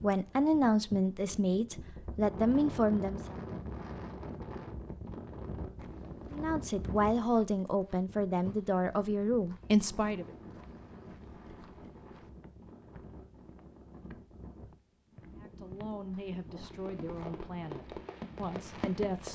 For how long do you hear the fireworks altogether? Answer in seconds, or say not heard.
3 s.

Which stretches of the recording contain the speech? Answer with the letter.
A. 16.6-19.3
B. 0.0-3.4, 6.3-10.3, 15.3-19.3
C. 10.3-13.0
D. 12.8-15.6
B.